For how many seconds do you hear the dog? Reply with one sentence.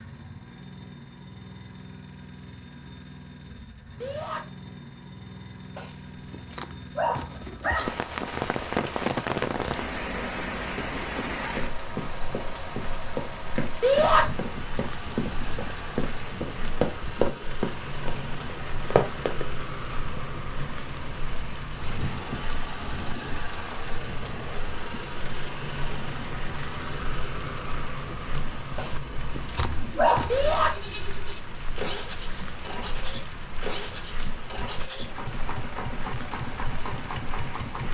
You can hear the dog for 4 seconds altogether.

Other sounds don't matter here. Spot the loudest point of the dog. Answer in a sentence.
The loudest moment of the dog is at 30 seconds.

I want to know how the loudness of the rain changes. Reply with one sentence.
The volume of the rain goes down.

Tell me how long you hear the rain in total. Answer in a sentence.
The rain can be heard for 30 seconds in total.